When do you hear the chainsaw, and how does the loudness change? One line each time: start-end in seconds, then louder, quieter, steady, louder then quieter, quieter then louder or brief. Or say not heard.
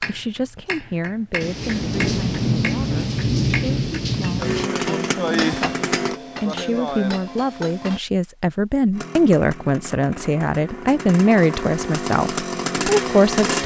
4.4-6.2 brief
8.9-13.6 louder.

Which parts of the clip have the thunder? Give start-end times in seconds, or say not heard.
1.4-4.7.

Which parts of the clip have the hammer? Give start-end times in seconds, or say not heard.
0.0-8.0.